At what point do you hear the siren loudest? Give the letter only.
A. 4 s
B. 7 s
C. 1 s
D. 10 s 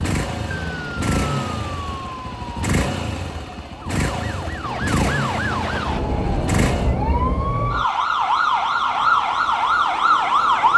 D.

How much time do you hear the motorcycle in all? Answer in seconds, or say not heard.
7 s.